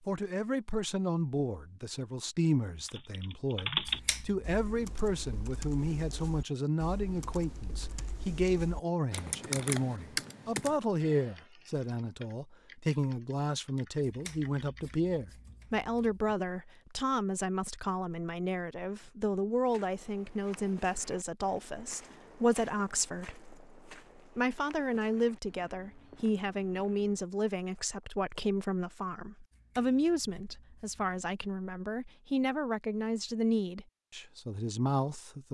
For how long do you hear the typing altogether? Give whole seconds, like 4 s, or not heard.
12 s.